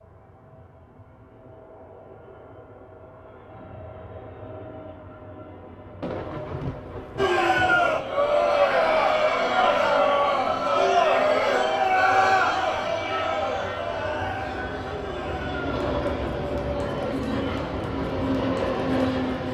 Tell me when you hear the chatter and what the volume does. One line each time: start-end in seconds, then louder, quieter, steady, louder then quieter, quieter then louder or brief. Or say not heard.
7.2-19.4 quieter.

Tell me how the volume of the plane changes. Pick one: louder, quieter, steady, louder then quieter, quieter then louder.
louder.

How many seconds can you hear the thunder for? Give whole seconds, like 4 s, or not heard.
2 s.